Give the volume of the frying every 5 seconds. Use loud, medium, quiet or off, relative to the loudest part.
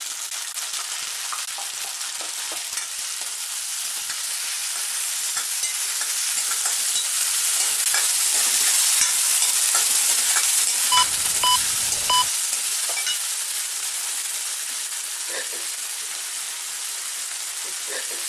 medium, loud, loud, medium.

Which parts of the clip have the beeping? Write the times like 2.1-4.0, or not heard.
10.9-12.2.